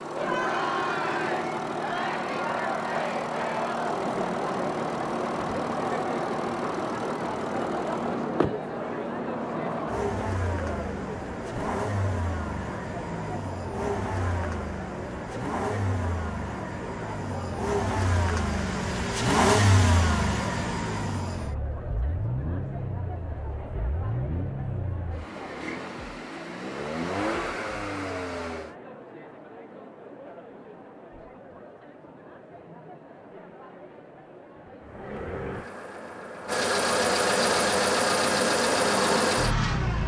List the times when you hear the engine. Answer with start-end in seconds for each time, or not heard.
0.0-28.8, 34.8-40.0.